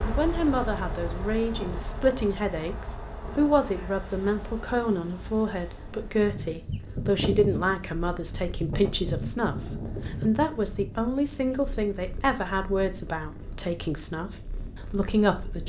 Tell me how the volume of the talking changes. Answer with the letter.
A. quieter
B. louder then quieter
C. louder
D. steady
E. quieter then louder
D.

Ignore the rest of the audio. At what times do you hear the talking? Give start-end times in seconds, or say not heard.
0.1-15.6.